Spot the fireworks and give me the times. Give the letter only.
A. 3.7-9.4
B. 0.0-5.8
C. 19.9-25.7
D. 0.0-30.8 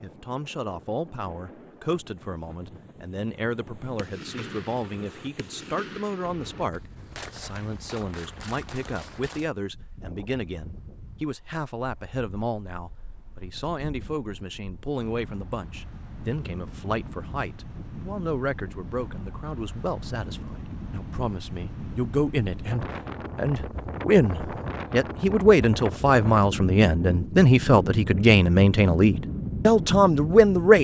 A.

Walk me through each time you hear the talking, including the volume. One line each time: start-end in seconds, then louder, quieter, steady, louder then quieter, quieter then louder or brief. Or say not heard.
0.0-30.8 louder.